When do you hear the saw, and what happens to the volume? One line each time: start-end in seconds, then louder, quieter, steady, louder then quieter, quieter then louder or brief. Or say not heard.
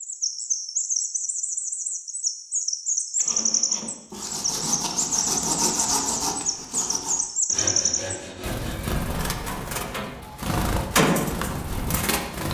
3.1-9.2 louder then quieter.